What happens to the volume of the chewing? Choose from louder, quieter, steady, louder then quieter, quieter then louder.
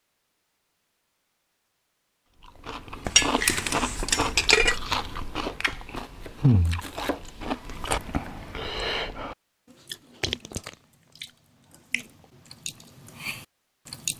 quieter.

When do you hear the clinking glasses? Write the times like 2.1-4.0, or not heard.
3.0-4.8.